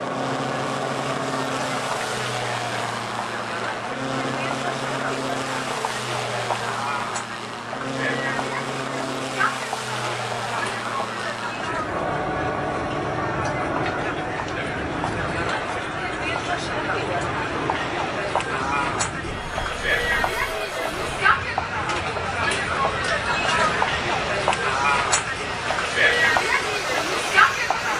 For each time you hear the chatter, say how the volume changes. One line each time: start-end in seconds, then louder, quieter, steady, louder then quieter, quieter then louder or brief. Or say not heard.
0.0-27.9 louder.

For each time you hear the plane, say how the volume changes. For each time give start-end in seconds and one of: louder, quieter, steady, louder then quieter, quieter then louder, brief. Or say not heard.
0.0-27.9 quieter.